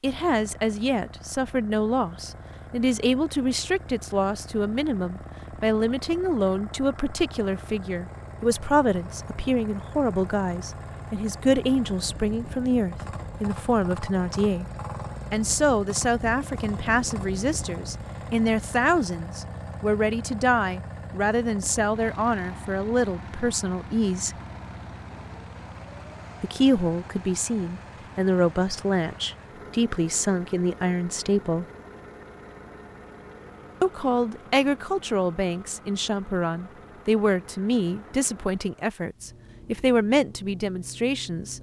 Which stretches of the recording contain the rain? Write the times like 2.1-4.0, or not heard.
not heard.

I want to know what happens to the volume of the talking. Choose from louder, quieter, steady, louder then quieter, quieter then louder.
steady.